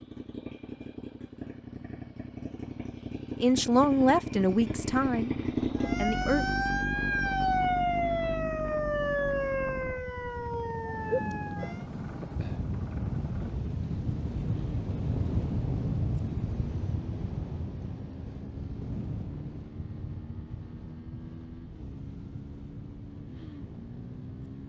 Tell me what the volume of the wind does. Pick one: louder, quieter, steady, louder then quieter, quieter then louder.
louder then quieter.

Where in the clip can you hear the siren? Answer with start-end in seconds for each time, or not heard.
5.8-11.8.